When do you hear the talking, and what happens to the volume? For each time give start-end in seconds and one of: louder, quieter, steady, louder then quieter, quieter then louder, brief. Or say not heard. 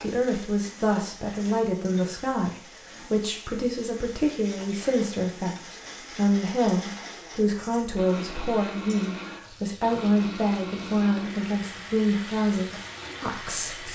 0.0-13.9 steady.